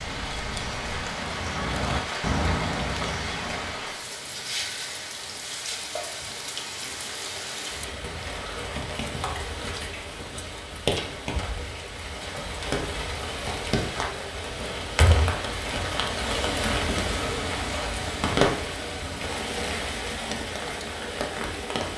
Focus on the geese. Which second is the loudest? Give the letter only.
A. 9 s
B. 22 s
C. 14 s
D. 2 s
D.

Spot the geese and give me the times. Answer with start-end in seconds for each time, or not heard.
0.0-3.8.